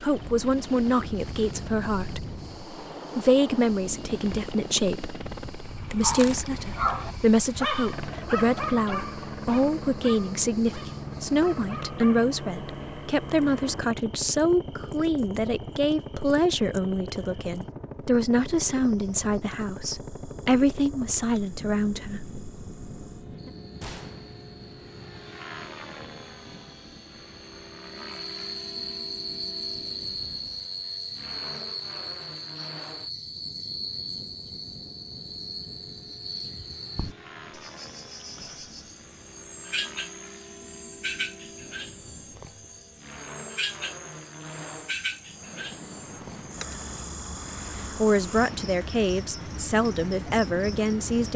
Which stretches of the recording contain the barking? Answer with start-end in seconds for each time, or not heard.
6.0-12.3.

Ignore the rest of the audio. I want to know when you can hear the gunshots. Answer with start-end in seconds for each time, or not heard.
23.8-24.4.